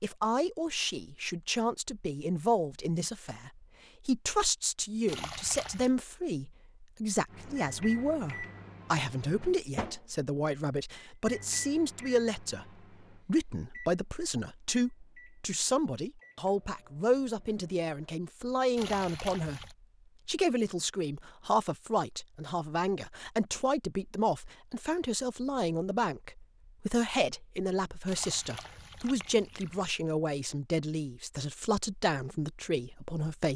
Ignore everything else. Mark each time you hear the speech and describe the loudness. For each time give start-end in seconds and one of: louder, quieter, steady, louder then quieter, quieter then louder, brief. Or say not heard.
0.0-33.5 steady.